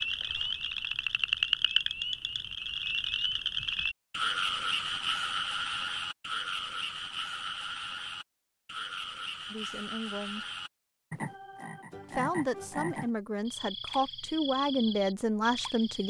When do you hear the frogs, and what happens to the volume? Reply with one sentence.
You can hear the frogs from 0.0 to 16.0 s, getting quieter.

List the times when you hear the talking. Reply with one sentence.
The talking can be heard from 9.5 to 10.4 s and from 12.1 to 16.0 s.